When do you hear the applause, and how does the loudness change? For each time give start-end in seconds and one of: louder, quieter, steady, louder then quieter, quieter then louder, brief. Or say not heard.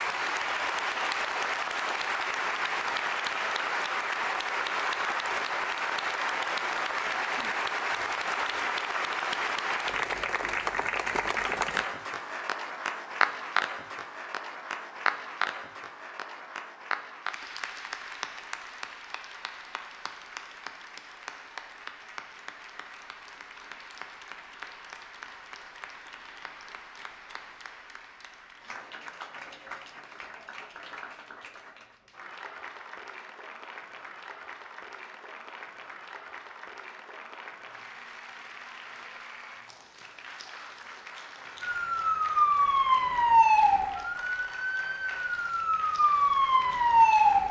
0.0-47.4 quieter.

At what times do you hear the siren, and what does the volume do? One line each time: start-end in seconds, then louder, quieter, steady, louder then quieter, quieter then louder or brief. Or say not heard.
41.6-47.4 quieter then louder.